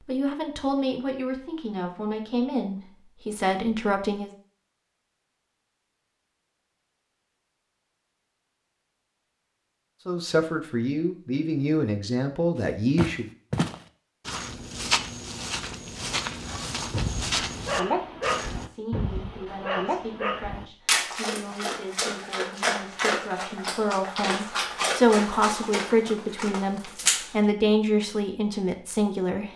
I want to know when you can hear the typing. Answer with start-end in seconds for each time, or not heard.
not heard.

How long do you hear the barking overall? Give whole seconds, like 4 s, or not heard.
11 s.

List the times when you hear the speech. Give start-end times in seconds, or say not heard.
0.0-4.3, 10.1-13.2, 18.6-29.5.